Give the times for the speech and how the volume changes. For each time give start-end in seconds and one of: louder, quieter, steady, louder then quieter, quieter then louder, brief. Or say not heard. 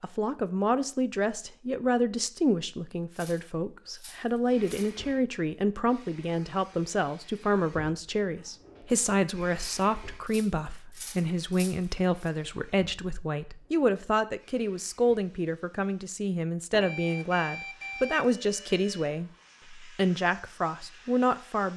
0.0-21.7 steady.